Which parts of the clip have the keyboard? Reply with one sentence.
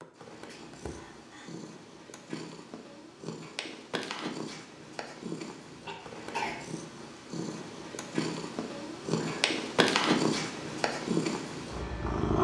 The keyboard can't be heard in this clip.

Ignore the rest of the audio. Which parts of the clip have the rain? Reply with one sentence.
You can't hear the rain here.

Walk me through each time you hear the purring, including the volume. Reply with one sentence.
The purring can be heard from 0.0 to 12.3 s, getting louder.